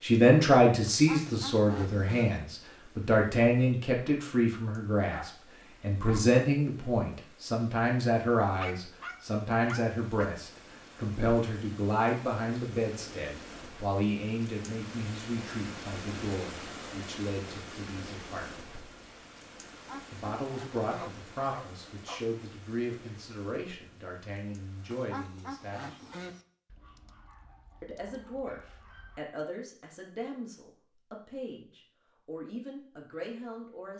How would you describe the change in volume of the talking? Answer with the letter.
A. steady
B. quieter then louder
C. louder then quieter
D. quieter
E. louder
D.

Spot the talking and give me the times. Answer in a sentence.
The talking can be heard from 0.0 to 18.4 s, from 20.1 to 26.1 s and from 27.8 to 33.9 s.